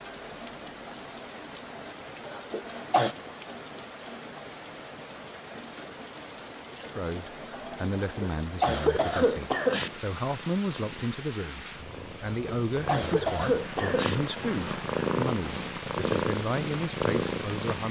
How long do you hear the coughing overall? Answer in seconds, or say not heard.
5 s.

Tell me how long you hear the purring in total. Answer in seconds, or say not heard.
9 s.